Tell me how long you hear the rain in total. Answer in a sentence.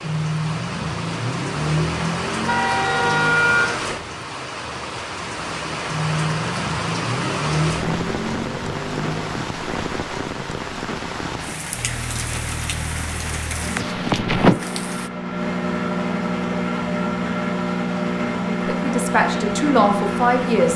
You can hear the rain for 15 seconds altogether.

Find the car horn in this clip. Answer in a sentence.
The car horn can be heard from 2.5 to 3.8 s.